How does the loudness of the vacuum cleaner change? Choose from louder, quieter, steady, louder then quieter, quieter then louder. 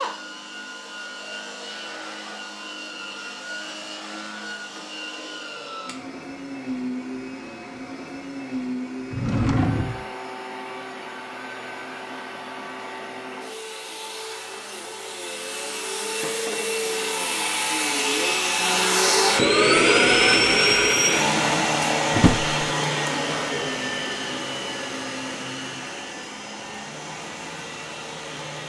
louder then quieter.